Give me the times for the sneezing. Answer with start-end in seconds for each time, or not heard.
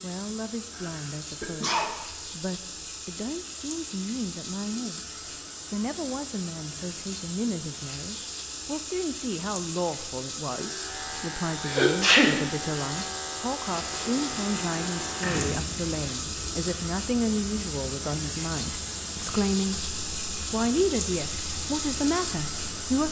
0.8-1.9, 11.7-12.3.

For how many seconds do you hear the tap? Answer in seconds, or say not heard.
23 s.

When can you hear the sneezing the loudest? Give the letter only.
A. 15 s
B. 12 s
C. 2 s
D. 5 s
B.